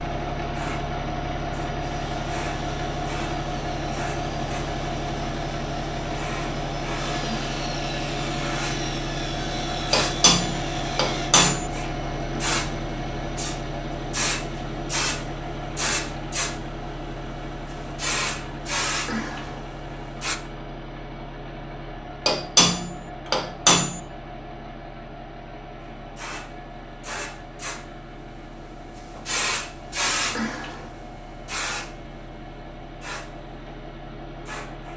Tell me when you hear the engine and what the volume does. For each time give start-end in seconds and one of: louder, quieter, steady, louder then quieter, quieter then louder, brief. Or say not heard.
0.0-34.9 quieter.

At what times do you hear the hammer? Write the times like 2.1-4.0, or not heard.
9.9-11.7, 22.2-24.0.